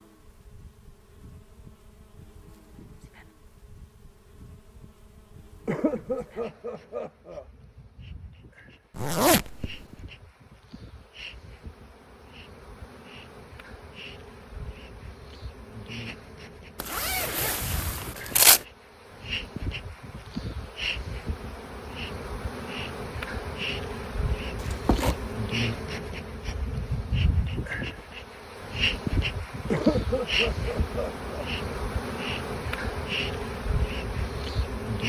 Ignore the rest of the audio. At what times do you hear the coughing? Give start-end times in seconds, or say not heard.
5.7-7.5, 29.7-31.4.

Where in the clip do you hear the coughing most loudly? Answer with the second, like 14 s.
30 s.